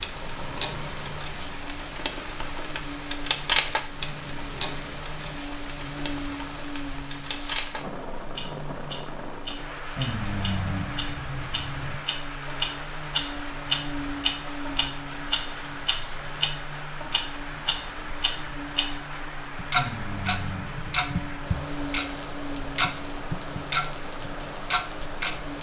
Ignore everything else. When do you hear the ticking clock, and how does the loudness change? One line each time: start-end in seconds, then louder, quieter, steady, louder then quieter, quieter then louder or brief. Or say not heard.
0.0-25.4 quieter then louder.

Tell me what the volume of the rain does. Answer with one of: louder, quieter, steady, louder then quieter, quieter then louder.
steady.